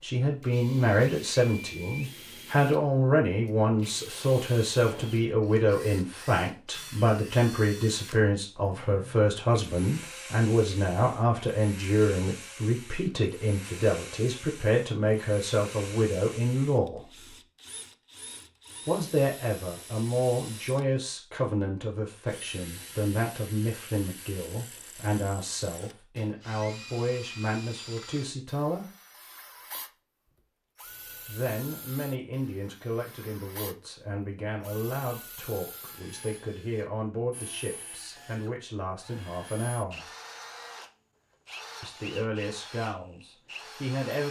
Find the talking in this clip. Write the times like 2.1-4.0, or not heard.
0.0-17.4, 18.9-28.9, 31.2-40.1, 41.8-44.2.